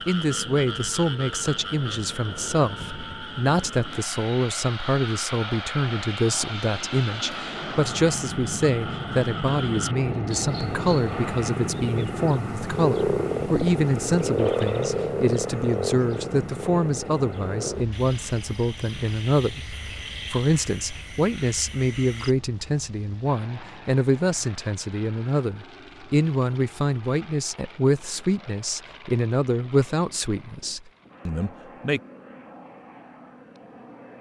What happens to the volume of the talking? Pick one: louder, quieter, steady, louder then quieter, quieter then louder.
steady.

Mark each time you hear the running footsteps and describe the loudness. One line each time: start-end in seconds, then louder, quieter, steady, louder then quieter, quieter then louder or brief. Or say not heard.
not heard.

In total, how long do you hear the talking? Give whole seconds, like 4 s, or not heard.
32 s.